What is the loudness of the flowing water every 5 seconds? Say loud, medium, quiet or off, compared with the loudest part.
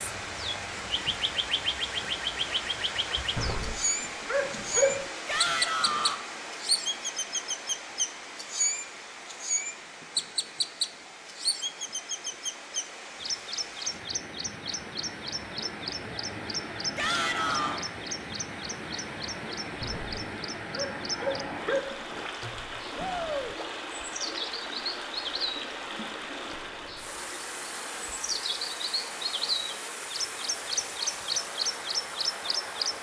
loud, loud, medium, loud, loud, loud, loud.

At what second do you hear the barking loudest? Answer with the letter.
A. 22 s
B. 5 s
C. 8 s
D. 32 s
B.